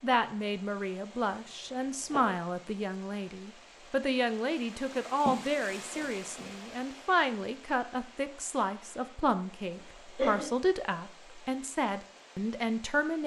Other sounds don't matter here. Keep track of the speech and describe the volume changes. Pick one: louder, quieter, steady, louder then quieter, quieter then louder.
steady.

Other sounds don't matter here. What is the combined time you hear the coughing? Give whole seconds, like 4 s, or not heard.
3 s.